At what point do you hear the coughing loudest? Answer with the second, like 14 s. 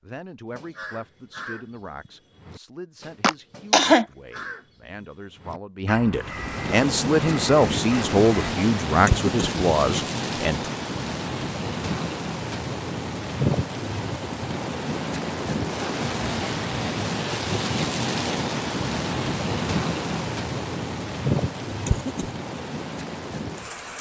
4 s.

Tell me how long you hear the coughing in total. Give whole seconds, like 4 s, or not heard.
2 s.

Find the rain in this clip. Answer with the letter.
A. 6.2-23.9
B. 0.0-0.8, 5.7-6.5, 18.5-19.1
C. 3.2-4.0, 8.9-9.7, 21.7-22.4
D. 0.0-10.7
A.